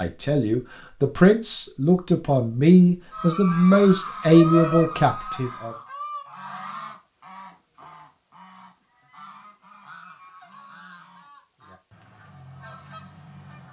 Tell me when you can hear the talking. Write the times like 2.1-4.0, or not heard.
0.0-5.8.